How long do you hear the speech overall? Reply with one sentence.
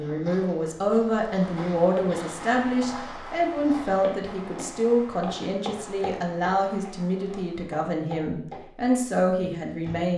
The speech can be heard for 10 seconds in total.